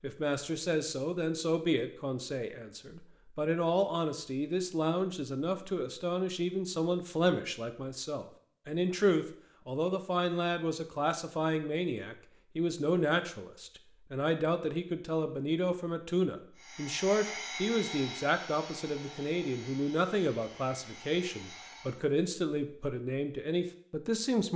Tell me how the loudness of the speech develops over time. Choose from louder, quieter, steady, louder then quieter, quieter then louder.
steady.